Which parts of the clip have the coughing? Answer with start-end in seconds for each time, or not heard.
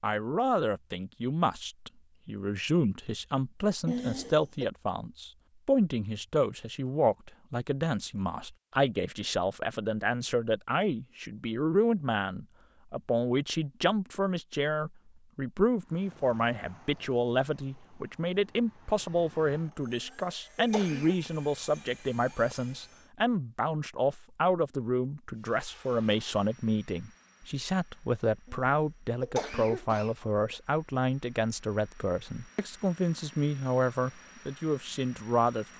3.9-4.7, 19.9-21.1, 28.4-30.6.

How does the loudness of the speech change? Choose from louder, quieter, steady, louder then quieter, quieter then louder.
steady.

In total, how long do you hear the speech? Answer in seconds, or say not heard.
36 s.